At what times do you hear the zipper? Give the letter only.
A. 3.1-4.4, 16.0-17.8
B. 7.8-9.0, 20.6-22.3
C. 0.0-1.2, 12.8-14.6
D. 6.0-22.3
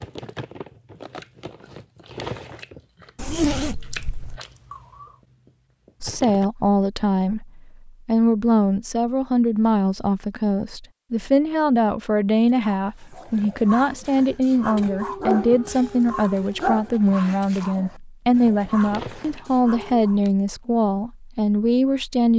A.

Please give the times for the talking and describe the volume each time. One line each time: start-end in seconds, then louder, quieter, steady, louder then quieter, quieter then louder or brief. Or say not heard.
6.0-22.3 steady.